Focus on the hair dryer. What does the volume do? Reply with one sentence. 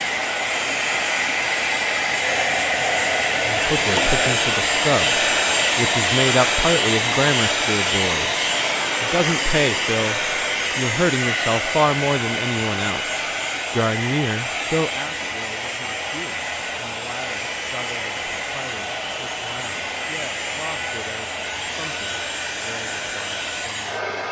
The volume of the hair dryer goes down.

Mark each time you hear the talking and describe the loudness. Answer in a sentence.
You can hear the talking from 3.5 to 24.2 s, getting quieter.